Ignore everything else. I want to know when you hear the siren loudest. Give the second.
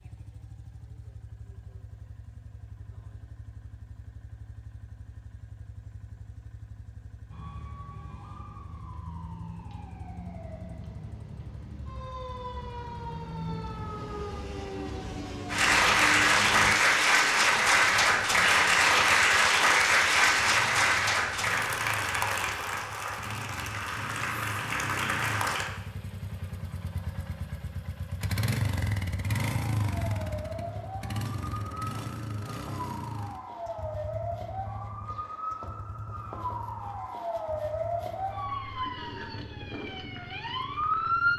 41 s.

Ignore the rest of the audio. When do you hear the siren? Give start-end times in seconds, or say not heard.
7.3-16.8, 29.5-41.3.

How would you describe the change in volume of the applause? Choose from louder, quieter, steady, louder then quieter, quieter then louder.
quieter.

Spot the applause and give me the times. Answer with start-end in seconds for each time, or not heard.
15.4-25.7.